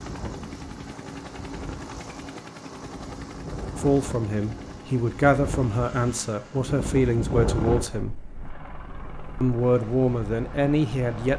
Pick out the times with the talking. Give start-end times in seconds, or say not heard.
3.8-8.2, 9.4-11.3.